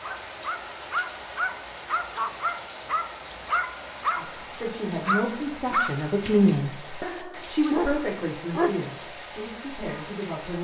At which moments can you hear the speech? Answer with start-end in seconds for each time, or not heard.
4.2-10.6.